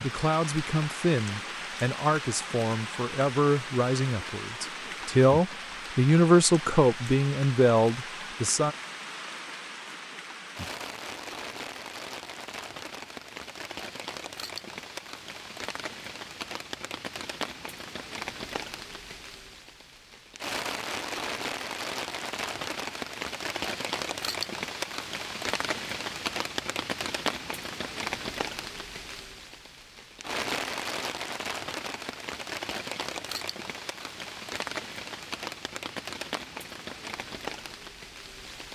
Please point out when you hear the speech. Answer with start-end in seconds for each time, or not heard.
0.0-8.8.